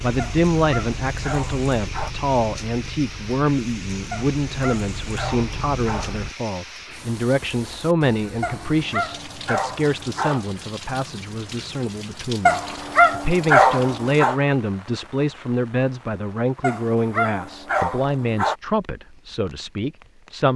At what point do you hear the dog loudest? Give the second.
14 s.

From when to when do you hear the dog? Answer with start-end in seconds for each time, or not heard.
0.1-2.1, 4.1-6.2, 8.4-10.4, 12.4-14.3, 16.6-18.6.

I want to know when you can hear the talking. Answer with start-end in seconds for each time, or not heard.
0.0-20.5.